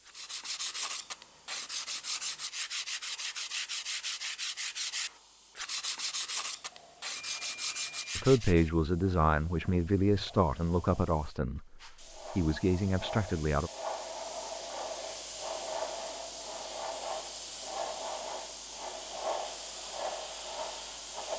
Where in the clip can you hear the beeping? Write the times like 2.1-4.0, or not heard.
7.2-8.2.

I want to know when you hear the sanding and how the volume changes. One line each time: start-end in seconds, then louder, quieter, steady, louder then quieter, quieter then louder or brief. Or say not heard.
0.1-8.7 steady.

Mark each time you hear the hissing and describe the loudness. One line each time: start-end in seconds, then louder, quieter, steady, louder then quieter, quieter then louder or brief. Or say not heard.
0.0-21.3 louder.